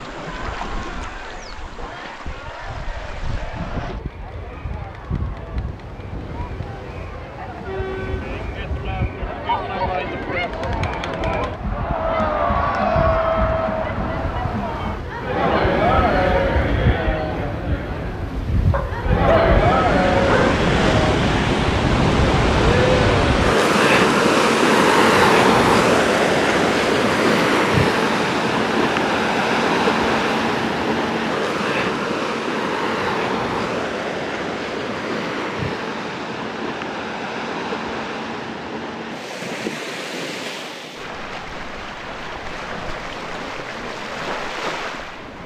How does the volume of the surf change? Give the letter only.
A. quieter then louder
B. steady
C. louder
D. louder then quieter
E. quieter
D.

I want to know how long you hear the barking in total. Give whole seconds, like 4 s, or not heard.
2 s.